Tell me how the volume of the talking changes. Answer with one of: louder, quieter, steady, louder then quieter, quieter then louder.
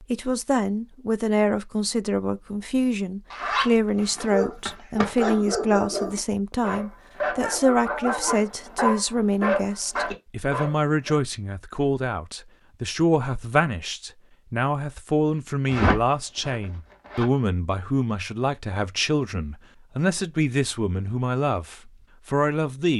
steady.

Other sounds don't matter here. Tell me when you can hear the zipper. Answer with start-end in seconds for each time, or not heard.
3.3-5.3, 15.7-17.2.